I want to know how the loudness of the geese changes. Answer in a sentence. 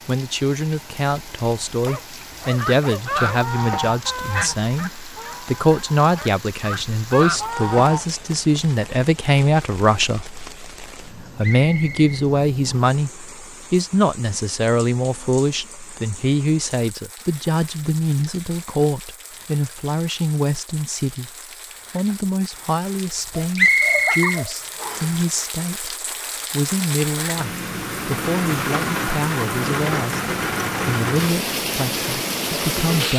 The loudness of the geese goes down, then up.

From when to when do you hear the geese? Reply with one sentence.
The geese can be heard from 2.5 to 8.1 s.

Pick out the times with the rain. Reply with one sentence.
The rain can be heard from 0.0 to 33.1 s.